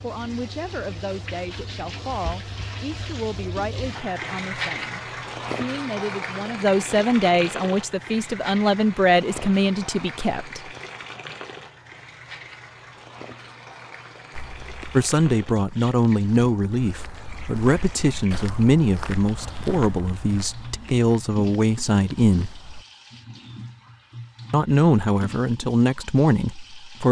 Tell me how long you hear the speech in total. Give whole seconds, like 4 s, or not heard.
21 s.